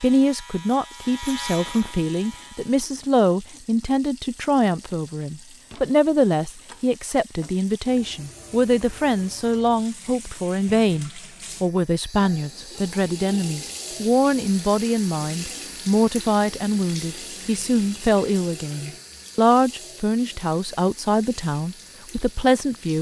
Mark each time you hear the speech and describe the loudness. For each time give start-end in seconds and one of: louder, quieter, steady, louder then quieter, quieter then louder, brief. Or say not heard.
0.0-22.9 steady.